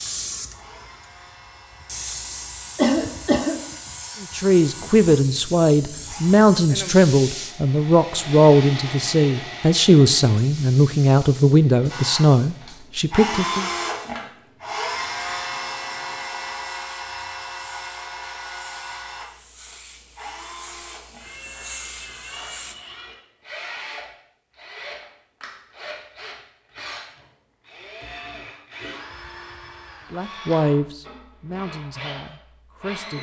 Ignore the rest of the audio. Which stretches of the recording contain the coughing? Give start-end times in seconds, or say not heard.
2.8-3.6.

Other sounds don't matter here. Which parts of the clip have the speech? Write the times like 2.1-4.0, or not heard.
4.2-13.7, 30.1-33.1.